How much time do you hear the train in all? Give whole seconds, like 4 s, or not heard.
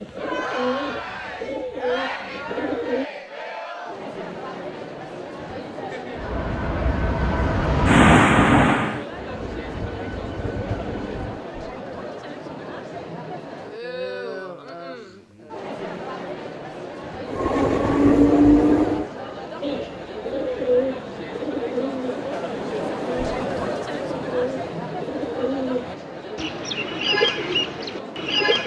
7 s.